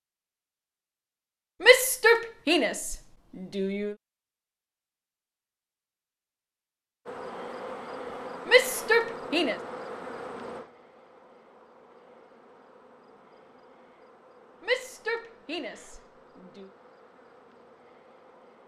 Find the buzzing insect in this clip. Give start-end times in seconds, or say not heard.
7.0-18.6.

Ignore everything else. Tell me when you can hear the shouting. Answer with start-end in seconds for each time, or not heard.
1.6-4.0, 8.4-9.6, 14.6-16.7.